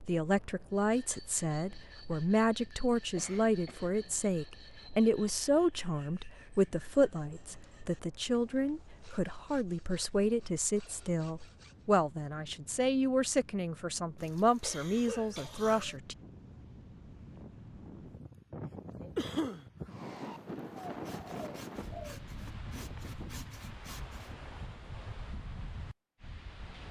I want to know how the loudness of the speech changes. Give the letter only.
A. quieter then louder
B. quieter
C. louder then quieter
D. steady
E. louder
D.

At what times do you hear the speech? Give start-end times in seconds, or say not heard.
0.0-16.1.